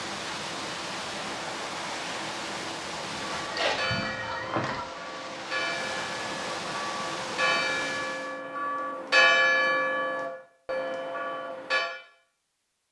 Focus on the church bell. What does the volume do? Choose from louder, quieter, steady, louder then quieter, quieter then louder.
louder then quieter.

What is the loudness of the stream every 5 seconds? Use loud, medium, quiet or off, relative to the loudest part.
loud, loud, off.